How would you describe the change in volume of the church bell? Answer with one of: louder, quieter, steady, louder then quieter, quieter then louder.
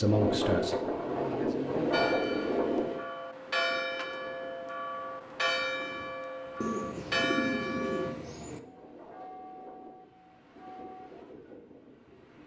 quieter.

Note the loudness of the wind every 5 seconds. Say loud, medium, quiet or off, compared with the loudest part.
loud, quiet, quiet.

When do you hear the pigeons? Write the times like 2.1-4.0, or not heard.
6.6-8.6.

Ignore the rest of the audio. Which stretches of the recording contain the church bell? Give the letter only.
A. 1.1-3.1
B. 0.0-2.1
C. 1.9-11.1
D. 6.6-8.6
C.